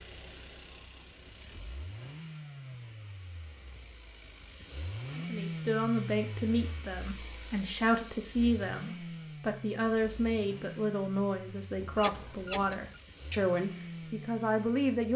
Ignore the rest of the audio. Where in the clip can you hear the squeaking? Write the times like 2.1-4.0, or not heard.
11.8-13.0.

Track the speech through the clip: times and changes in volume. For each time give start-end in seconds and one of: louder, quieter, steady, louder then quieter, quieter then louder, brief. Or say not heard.
5.2-15.1 steady.